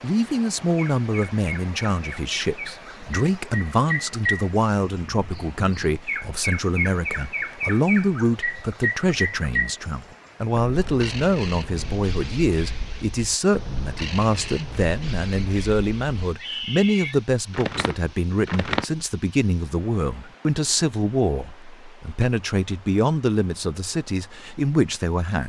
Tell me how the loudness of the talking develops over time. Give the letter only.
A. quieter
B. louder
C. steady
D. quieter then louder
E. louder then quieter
C.